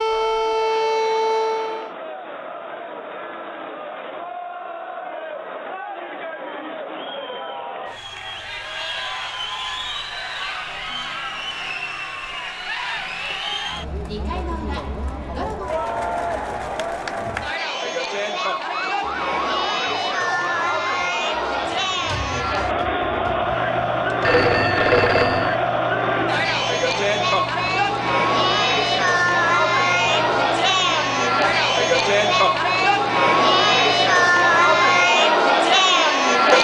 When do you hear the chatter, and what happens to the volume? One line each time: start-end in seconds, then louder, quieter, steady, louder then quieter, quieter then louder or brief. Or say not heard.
0.0-36.5 louder.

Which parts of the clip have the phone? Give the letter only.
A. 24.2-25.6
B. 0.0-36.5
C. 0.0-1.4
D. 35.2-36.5
A.